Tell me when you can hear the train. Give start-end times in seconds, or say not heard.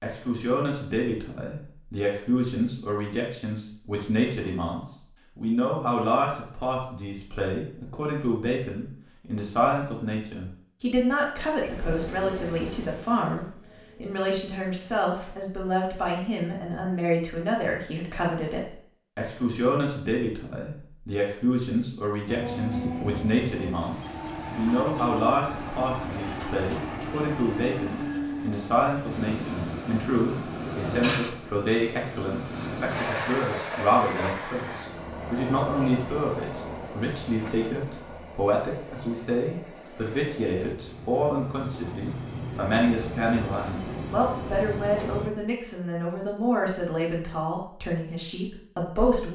11.6-15.4, 22.2-45.3.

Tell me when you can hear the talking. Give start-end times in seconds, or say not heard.
0.0-49.3.